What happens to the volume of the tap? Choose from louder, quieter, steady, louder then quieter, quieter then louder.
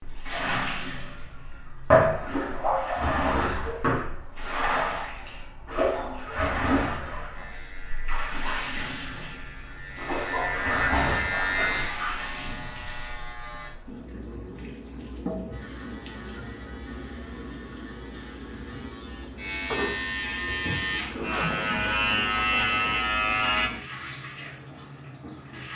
quieter.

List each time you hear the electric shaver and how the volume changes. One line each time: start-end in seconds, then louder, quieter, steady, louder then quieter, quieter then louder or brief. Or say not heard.
7.3-13.7 louder then quieter
15.5-23.7 louder.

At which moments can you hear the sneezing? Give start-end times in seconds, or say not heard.
21.0-21.6.